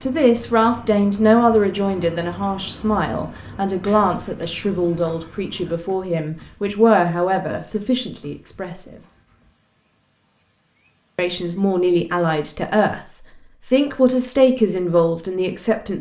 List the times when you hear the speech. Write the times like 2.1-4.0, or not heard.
0.0-8.9, 11.2-13.0, 13.7-15.9.